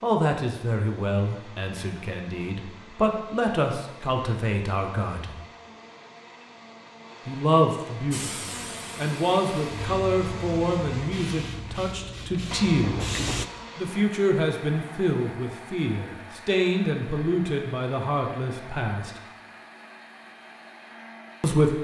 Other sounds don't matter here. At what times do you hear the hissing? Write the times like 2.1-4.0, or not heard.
8.1-13.4.